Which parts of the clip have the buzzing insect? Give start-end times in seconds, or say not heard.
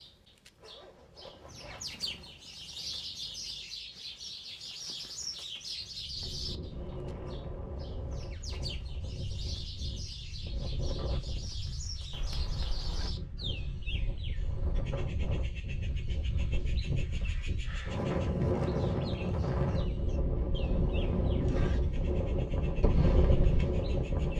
not heard.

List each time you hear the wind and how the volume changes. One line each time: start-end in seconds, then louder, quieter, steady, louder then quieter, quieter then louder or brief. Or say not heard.
6.0-24.3 louder.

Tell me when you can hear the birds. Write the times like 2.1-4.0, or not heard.
0.0-24.3.